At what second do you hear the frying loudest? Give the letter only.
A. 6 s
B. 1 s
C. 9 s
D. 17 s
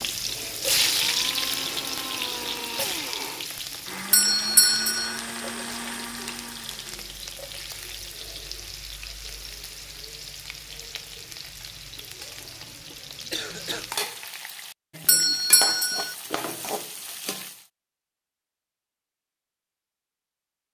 B.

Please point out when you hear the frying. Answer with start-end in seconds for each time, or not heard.
0.0-17.6.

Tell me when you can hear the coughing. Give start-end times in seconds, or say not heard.
13.3-13.9.